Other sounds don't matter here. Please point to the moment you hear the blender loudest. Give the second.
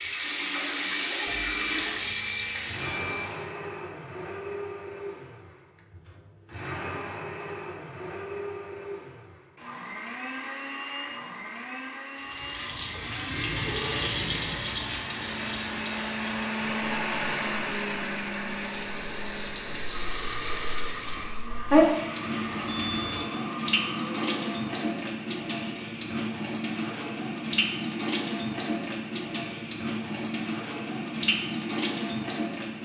17 s.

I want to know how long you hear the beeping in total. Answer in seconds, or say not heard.
4 s.